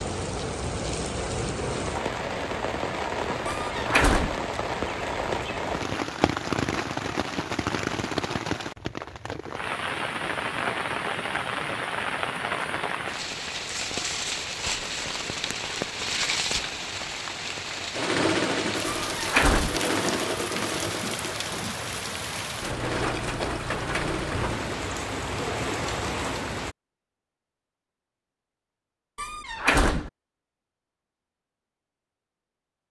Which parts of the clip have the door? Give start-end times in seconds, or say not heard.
3.5-4.4, 19.0-19.8, 29.1-30.1.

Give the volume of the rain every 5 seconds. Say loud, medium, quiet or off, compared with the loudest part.
loud, loud, loud, loud, loud, loud, off.